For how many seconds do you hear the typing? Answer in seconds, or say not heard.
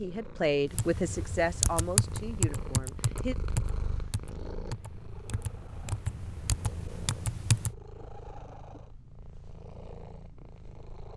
7 s.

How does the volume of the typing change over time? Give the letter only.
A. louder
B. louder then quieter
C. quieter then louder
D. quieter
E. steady
C.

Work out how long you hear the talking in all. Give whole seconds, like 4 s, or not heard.
3 s.